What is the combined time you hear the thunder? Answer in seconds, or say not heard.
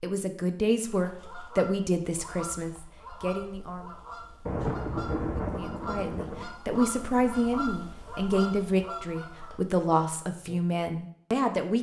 2 s.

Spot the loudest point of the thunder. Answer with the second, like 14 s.
5 s.